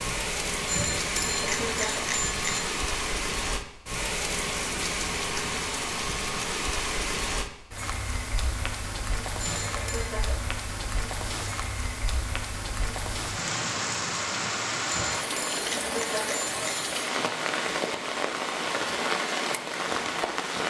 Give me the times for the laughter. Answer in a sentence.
The laughter can be heard from 1.2 to 2.1 s, from 9.6 to 10.5 s and from 15.6 to 16.4 s.